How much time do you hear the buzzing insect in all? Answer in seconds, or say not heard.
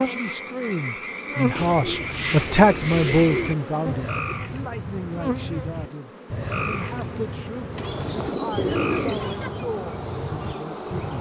11 s.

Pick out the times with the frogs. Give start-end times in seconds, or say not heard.
0.0-11.1.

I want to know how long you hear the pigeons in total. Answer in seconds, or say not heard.
4 s.